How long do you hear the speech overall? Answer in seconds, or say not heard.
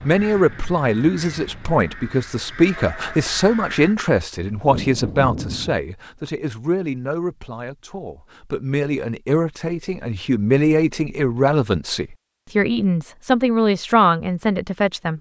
15 s.